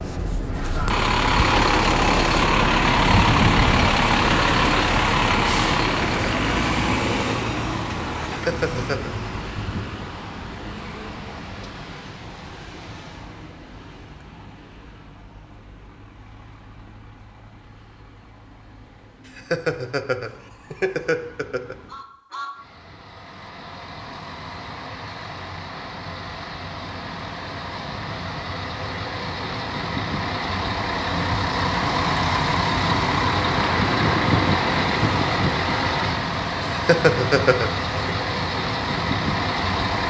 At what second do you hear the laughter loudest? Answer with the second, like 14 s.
37 s.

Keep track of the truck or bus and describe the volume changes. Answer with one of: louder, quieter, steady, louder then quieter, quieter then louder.
quieter then louder.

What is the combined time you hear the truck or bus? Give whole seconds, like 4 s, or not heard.
40 s.